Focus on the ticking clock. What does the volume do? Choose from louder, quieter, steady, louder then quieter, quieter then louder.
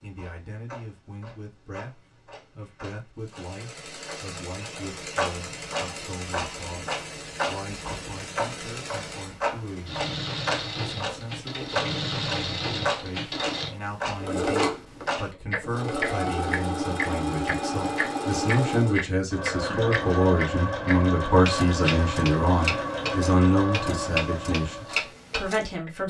louder.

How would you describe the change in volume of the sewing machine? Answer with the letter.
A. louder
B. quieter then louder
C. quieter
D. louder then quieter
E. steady
A.